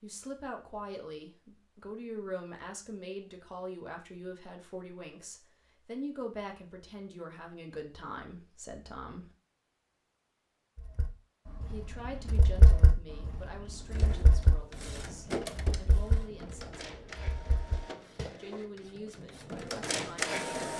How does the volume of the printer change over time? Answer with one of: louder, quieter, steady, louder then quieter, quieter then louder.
quieter then louder.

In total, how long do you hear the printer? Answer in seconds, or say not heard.
7 s.